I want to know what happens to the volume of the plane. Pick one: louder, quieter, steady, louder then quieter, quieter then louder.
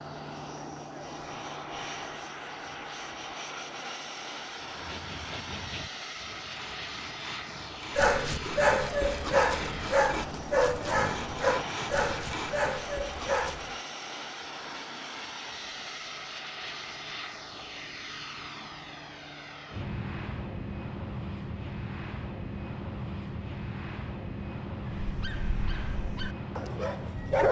steady.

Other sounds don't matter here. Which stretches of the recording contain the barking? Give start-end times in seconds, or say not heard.
8.0-13.8, 24.9-27.4.